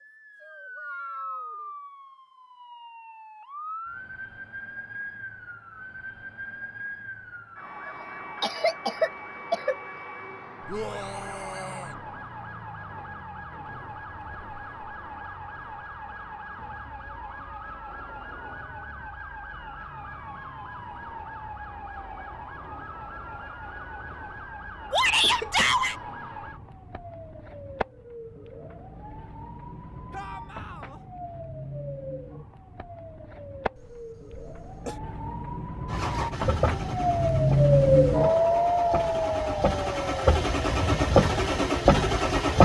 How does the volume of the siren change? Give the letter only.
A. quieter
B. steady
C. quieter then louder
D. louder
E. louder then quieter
D.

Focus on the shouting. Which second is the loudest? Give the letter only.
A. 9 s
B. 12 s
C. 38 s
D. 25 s
D.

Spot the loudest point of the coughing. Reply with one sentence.
The volume of the coughing peaks at 9 seconds.